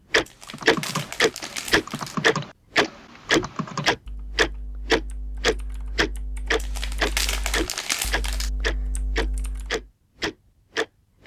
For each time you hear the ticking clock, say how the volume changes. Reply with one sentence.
The ticking clock can be heard from 0.1 to 11.2 s, getting quieter.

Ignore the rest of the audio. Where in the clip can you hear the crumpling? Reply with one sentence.
You can hear the crumpling from 0.2 to 2.1 s and from 6.6 to 8.5 s.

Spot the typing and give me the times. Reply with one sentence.
The typing can be heard from 0.5 to 9.8 s.